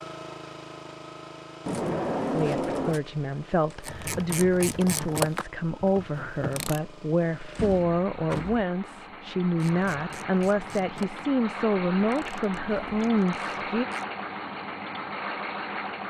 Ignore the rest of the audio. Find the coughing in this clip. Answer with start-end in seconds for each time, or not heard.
not heard.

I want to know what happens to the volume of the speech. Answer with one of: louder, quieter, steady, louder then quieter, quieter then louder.
steady.